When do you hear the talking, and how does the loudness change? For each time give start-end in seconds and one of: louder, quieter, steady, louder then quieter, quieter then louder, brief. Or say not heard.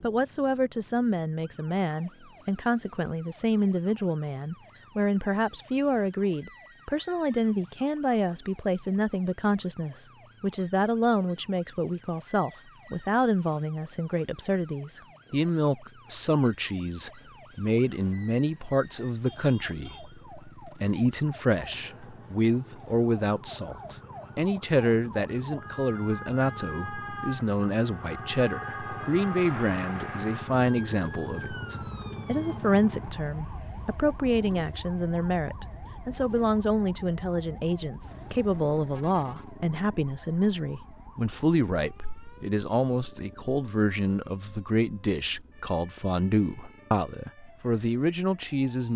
0.0-48.9 steady.